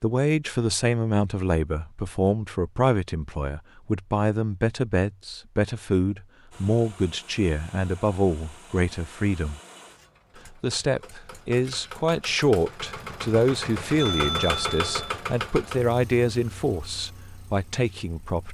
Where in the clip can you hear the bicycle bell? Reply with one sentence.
You can hear the bicycle bell from 13.9 to 15.1 s.